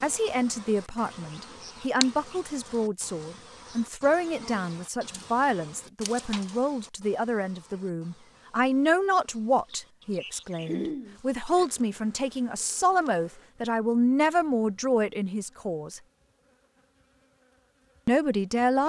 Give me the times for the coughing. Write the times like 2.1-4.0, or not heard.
10.6-11.7.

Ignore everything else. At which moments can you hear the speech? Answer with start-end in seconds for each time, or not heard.
0.0-16.0, 18.1-18.8.